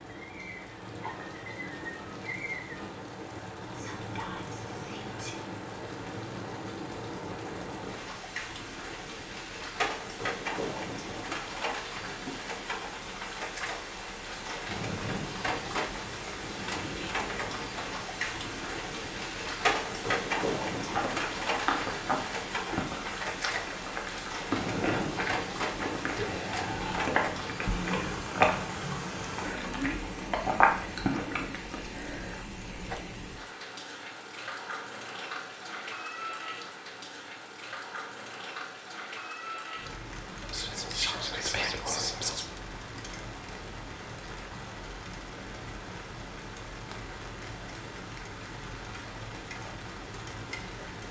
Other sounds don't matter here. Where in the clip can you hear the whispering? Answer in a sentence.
The whispering can be heard from 3.7 to 5.4 s, from 26.1 to 28.2 s and from 40.5 to 42.5 s.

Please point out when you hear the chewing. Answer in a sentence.
The chewing can be heard from 20.8 to 31.8 s.